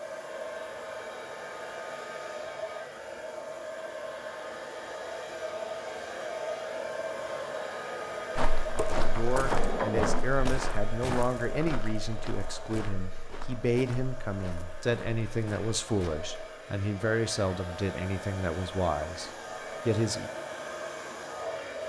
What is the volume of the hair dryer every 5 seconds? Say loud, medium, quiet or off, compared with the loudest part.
loud, loud, medium, medium, loud.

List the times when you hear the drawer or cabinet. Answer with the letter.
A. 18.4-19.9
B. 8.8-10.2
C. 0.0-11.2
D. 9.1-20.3
B.